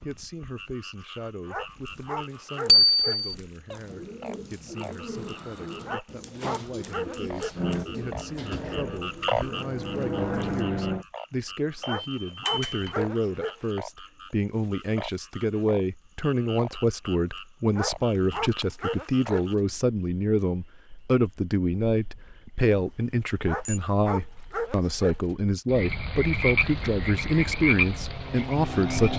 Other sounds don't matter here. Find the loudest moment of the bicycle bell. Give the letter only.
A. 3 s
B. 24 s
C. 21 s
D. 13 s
A.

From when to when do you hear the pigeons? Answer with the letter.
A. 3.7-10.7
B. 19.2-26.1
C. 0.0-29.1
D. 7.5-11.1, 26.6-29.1
A.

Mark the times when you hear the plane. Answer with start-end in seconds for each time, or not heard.
7.5-11.1, 26.6-29.1.